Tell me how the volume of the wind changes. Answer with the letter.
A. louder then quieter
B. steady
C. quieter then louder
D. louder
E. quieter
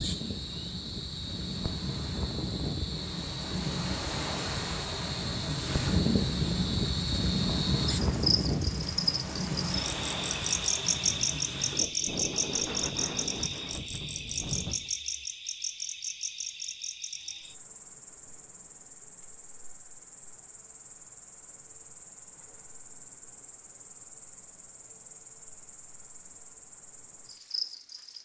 A.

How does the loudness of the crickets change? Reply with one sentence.
The volume of the crickets goes up, then down.